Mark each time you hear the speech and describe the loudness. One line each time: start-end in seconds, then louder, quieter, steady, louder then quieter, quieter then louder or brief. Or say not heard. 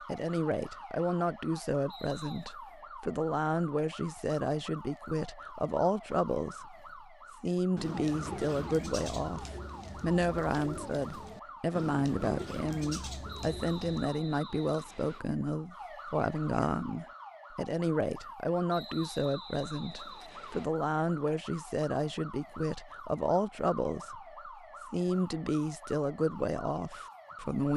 0.1-27.7 steady.